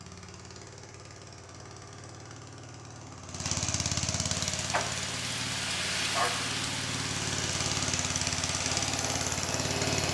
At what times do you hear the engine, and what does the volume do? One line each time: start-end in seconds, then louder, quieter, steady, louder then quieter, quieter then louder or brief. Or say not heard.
0.0-10.0 louder.